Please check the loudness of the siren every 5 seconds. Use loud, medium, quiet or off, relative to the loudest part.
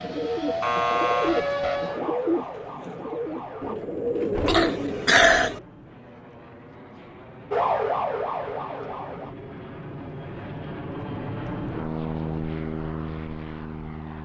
loud, loud, off.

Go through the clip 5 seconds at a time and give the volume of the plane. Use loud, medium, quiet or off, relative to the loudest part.
quiet, medium, loud.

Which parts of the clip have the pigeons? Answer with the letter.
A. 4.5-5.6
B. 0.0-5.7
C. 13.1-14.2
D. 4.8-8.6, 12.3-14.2
B.